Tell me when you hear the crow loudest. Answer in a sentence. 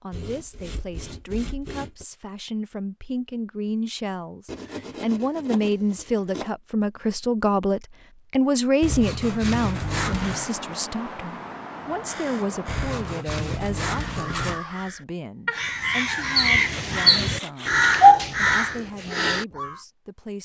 The loudest moment of the crow is at 18 seconds.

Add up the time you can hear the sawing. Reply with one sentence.
The sawing can be heard for 9 seconds in total.